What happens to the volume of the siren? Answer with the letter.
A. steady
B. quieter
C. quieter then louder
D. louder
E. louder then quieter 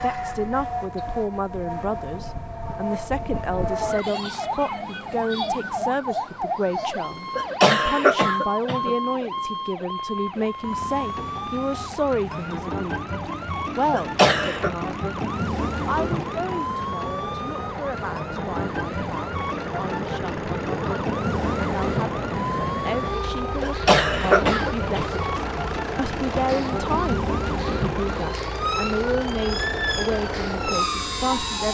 A.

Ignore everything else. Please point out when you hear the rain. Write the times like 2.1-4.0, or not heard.
not heard.